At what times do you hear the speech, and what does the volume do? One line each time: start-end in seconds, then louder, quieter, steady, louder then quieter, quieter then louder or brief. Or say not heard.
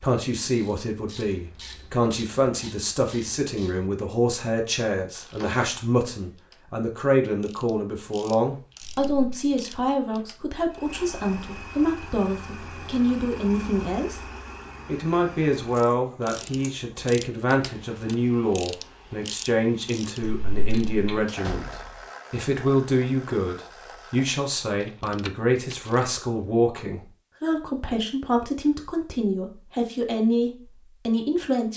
0.0-14.2 steady
14.8-31.7 steady.